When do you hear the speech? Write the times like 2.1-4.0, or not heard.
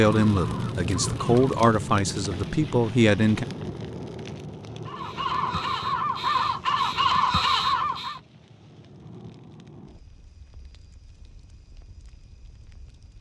0.0-3.5.